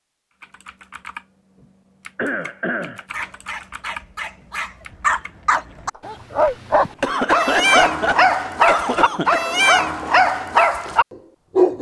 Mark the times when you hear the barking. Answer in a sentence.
You can hear the barking from 3.1 to 11.7 s.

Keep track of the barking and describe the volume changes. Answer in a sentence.
The loudness of the barking goes up.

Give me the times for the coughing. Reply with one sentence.
The coughing can be heard from 2.1 to 3.0 s and from 6.8 to 9.4 s.